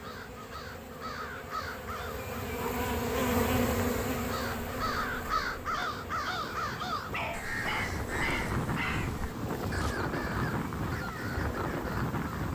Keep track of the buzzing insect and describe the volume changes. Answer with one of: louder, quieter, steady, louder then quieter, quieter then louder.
louder then quieter.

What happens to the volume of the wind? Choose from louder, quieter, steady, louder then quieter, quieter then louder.
louder.